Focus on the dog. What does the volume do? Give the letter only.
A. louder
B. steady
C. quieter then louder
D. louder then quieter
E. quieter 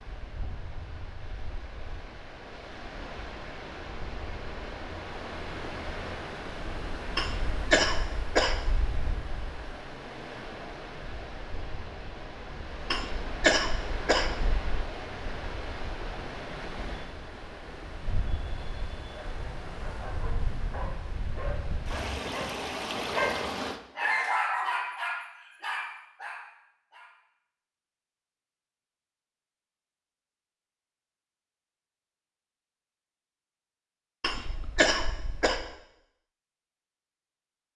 D.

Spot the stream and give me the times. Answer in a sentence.
The stream can be heard from 0.0 to 23.8 s.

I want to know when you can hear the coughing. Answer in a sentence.
The coughing can be heard from 7.2 to 8.9 s, from 12.9 to 14.9 s and from 34.2 to 35.6 s.